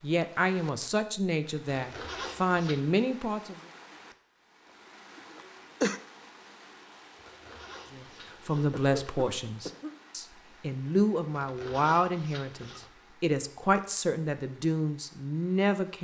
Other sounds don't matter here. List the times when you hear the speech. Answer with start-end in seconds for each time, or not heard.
0.0-3.5, 7.9-16.0.